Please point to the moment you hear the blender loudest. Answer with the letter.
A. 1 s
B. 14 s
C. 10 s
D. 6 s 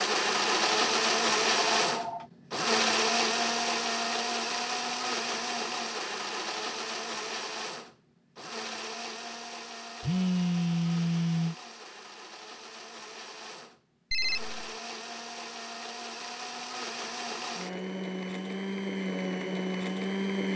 A.